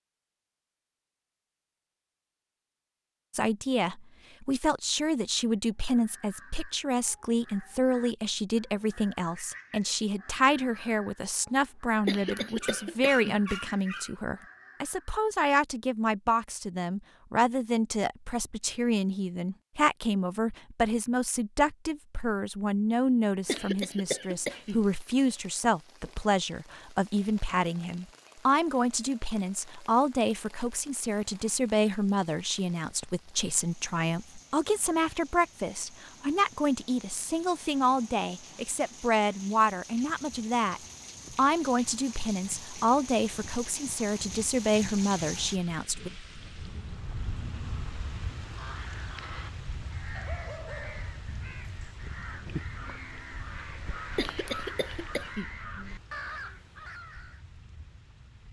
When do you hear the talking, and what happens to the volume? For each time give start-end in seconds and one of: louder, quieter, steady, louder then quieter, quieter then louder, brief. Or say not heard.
3.3-46.1 steady.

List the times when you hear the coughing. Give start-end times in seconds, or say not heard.
12.1-13.3, 23.4-24.8, 54.1-55.5.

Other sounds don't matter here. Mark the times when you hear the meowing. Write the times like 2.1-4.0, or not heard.
not heard.